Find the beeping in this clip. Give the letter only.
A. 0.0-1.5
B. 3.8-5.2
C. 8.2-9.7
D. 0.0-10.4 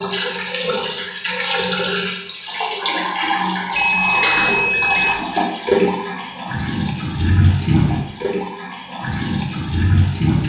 B.